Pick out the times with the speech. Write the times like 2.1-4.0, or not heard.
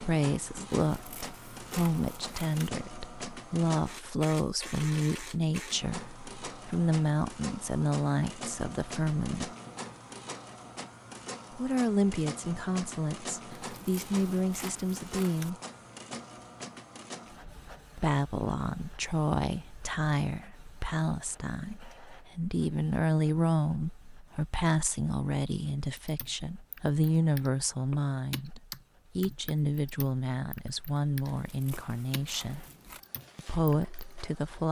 0.0-9.6, 11.6-15.6, 17.9-32.6, 33.4-34.6.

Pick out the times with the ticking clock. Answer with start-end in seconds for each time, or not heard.
not heard.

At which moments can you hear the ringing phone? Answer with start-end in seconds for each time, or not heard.
not heard.